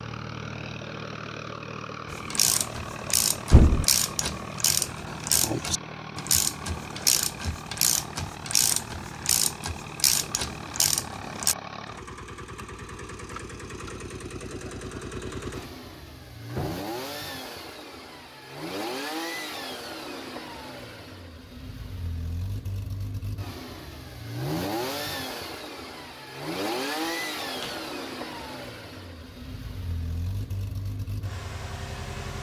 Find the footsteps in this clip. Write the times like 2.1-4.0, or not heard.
not heard.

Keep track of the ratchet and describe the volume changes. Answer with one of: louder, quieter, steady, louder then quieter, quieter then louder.
steady.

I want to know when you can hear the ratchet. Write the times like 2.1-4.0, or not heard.
2.0-11.6.